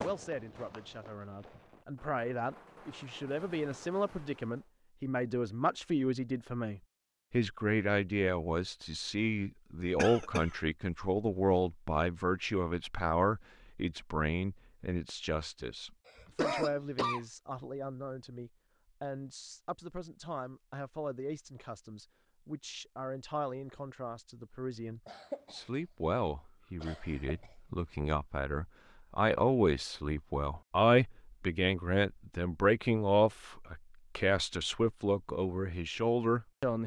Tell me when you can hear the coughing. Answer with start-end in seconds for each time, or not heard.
9.9-10.5, 16.1-17.2, 25.1-25.6, 26.8-27.5.